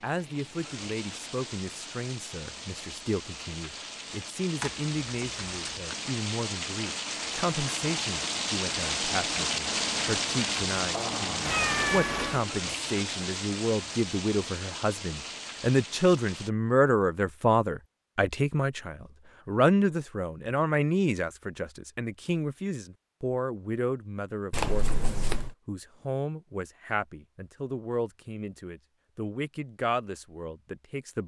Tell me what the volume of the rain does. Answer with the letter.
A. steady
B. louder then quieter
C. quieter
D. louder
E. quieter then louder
B.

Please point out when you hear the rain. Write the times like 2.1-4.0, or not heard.
0.0-16.5.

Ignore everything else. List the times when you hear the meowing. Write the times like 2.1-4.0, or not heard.
11.4-12.4.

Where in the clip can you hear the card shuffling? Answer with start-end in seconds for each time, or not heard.
4.6-6.0, 24.5-25.6.